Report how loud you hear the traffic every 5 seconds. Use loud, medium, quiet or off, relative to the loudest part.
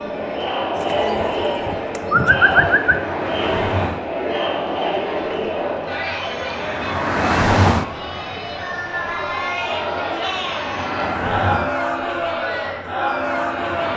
medium, loud, medium.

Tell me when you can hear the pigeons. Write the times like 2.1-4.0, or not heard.
0.8-3.0.